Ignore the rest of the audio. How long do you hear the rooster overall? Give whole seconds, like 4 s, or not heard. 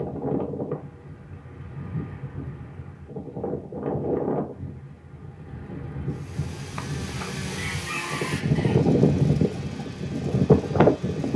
2 s.